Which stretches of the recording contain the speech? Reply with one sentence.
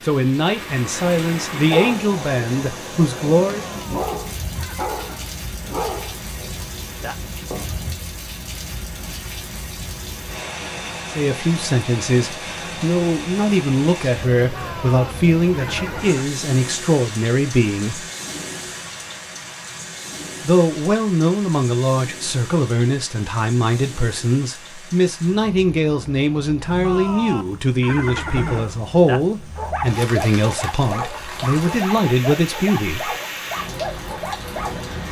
You can hear the speech from 0.0 to 3.6 s, from 11.1 to 18.1 s and from 20.4 to 33.1 s.